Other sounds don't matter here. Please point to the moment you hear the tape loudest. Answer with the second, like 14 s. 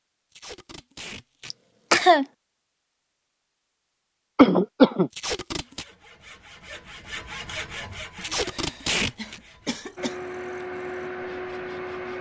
9 s.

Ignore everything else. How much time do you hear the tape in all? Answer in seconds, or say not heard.
4 s.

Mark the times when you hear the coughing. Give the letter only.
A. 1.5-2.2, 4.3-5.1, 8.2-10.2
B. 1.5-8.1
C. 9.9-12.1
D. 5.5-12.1
A.